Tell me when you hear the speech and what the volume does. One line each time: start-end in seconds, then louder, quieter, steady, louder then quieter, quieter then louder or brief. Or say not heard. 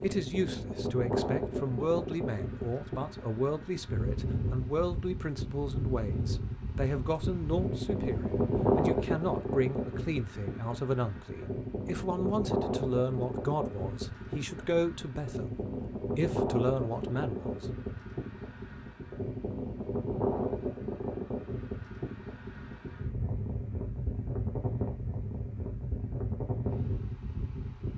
0.0-15.6 steady
16.1-17.6 brief.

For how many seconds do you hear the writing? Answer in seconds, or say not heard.
not heard.